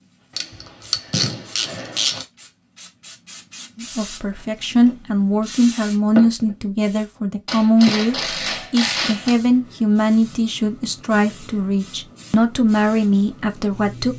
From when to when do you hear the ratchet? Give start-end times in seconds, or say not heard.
0.3-2.2, 7.5-9.3.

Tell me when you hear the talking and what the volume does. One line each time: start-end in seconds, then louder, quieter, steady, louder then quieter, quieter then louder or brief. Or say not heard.
3.8-14.1 steady.